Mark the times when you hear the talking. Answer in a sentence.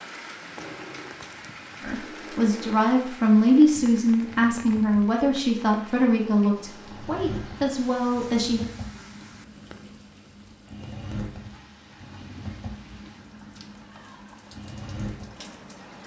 The talking can be heard from 1.8 to 8.7 s.